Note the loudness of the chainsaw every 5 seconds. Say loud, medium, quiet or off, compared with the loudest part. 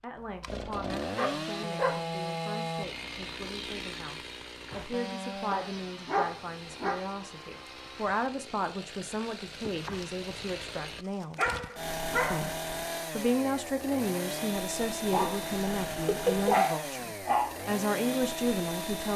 loud, medium, loud, loud.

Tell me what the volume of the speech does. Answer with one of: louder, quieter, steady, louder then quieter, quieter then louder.
louder.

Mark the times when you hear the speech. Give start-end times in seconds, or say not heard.
0.0-11.4, 12.3-19.1.